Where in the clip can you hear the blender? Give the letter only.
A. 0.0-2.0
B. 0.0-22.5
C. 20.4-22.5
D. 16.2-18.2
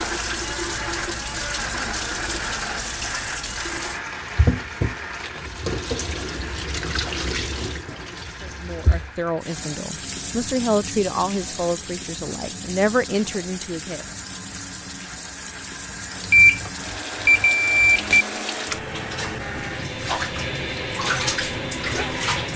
B.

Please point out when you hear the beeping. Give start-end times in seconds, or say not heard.
16.2-18.2.